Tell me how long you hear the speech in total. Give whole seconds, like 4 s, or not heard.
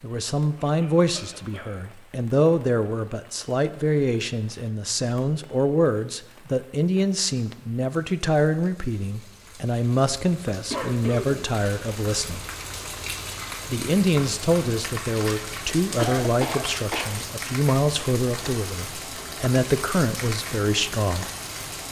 20 s.